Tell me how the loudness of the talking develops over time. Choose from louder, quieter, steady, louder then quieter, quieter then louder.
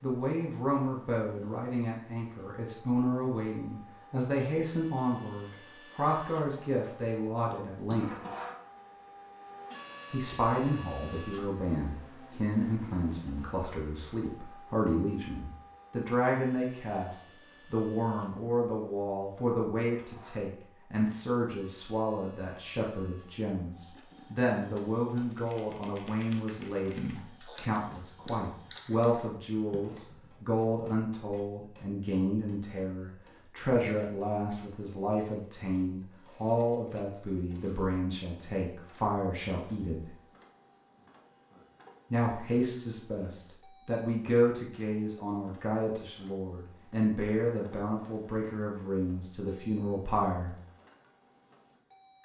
steady.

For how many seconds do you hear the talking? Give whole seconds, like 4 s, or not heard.
47 s.